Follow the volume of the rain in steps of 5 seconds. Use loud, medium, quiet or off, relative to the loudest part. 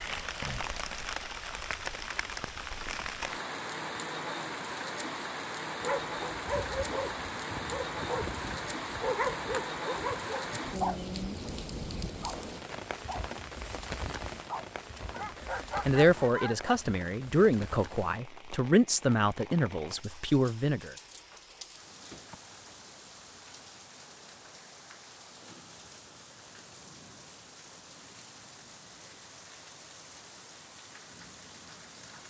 loud, loud, loud, medium, quiet, quiet, quiet.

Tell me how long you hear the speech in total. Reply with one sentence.
The speech can be heard for 5 seconds in total.